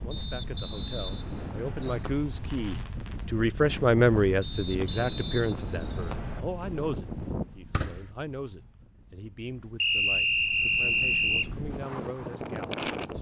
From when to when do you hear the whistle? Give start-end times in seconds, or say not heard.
0.1-2.1, 4.4-6.5, 9.8-11.5.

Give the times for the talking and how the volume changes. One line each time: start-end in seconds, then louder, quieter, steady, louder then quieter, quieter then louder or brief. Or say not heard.
0.0-13.1 louder then quieter.